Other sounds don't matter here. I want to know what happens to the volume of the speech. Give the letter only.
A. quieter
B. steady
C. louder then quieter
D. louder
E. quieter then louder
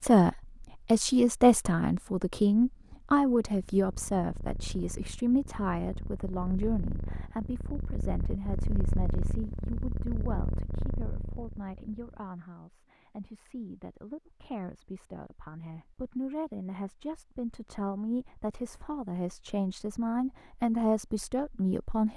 E.